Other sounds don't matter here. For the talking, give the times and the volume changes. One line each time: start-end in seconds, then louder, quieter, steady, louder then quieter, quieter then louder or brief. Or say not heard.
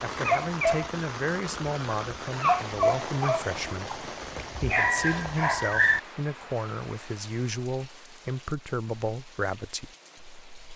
0.0-10.7 steady.